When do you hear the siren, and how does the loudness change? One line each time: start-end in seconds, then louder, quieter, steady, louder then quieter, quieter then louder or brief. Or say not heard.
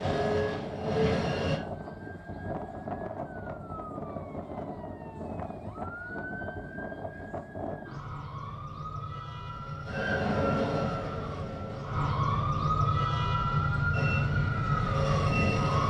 0.0-15.8 louder.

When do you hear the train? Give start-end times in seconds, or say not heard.
0.0-1.6, 9.4-12.2, 13.9-15.8.